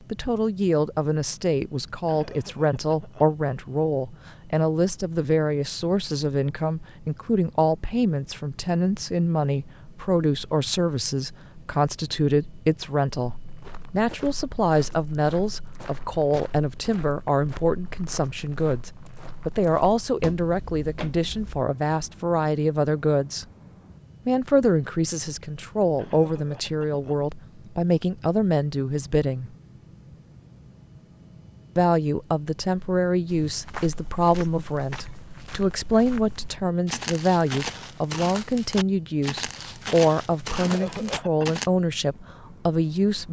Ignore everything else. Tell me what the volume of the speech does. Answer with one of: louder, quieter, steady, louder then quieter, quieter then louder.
steady.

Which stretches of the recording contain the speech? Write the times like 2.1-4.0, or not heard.
0.1-23.4, 24.2-29.5, 31.8-43.2.